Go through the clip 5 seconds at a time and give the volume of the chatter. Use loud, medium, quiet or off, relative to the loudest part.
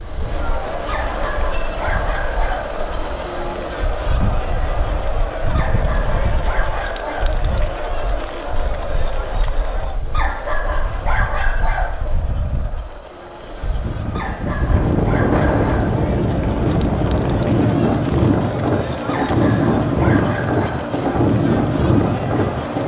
loud, loud, medium, loud, loud.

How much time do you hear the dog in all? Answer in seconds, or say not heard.
10 s.